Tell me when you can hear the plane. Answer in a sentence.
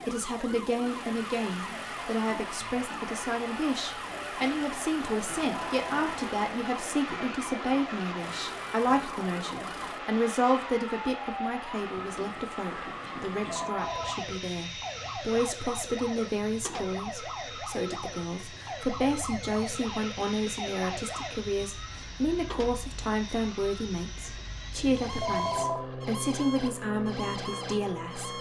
You can hear the plane from 0.8 to 28.3 s.